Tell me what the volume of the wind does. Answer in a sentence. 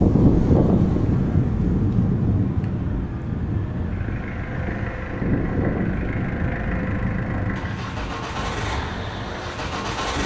The volume of the wind goes down.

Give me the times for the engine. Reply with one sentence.
The engine can be heard from 0.0 to 10.2 s.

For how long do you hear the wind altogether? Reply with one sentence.
You can hear the wind for 10 seconds altogether.